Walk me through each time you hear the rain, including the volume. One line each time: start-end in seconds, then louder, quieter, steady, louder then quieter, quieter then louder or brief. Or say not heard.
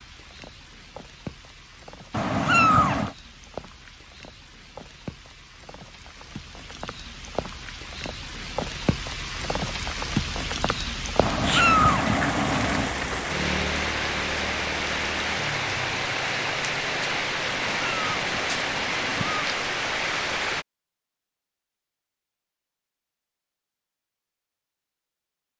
0.0-20.6 louder.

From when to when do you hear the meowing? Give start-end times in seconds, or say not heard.
2.1-3.1, 11.2-12.9, 17.4-19.4.